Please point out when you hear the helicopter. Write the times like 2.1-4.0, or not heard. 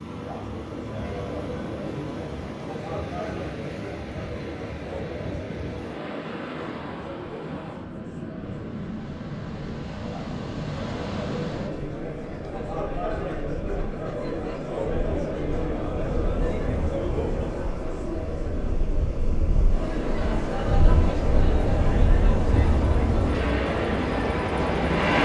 22.4-25.2.